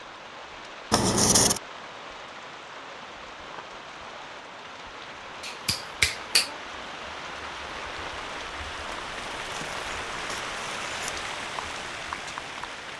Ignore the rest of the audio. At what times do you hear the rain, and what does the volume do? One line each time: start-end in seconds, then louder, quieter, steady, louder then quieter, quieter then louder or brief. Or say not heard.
0.0-12.9 louder.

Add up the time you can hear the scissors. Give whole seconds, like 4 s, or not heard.
3 s.